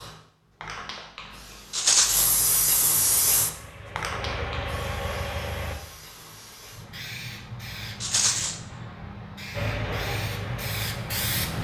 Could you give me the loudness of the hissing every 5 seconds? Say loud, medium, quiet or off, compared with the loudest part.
loud, medium, loud.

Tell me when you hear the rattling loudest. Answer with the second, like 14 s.
2 s.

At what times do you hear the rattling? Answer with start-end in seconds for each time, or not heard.
1.7-2.3, 8.0-8.6.